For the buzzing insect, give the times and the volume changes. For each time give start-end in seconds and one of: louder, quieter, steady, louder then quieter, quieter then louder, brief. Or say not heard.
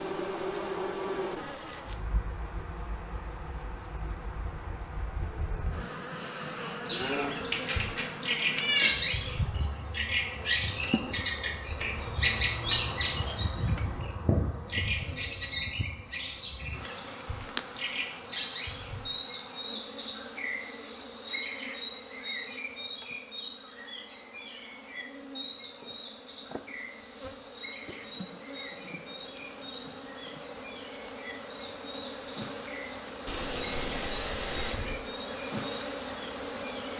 0.0-36.9 quieter then louder.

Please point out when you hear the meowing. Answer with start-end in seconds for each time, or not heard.
6.9-8.9, 33.2-35.0.